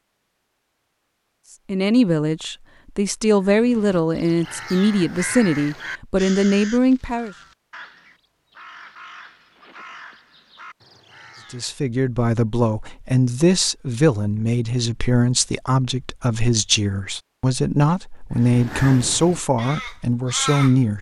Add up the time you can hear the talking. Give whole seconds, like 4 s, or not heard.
15 s.